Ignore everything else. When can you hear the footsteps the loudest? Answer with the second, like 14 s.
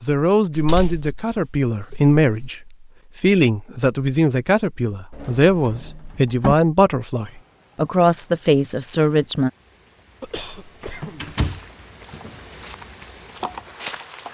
14 s.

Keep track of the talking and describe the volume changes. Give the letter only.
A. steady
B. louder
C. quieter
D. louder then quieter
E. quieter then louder
A.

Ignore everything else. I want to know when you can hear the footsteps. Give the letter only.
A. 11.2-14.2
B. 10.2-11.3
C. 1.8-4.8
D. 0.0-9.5
A.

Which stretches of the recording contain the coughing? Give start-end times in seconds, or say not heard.
10.2-11.3.